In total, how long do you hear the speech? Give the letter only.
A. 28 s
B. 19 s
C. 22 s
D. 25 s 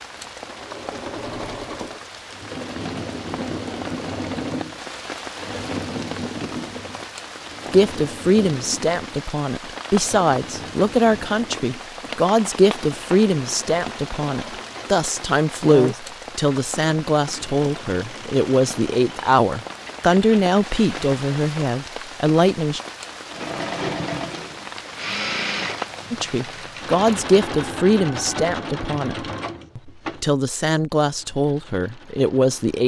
C.